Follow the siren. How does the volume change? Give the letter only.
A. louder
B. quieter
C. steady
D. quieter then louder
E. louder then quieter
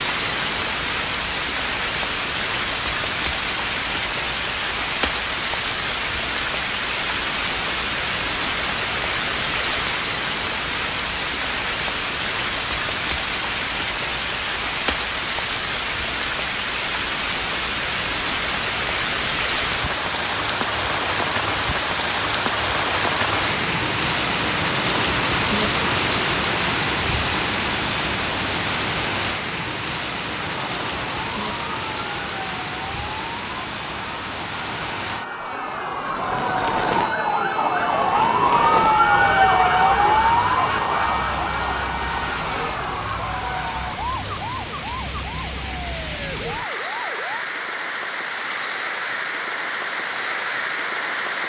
E.